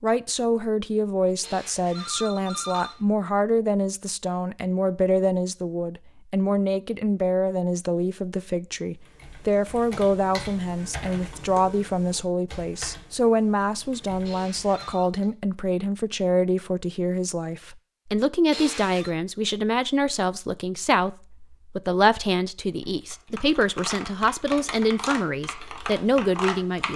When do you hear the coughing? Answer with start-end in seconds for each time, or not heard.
not heard.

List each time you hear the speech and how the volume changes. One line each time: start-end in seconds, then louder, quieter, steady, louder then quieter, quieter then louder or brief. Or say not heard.
0.0-26.9 steady.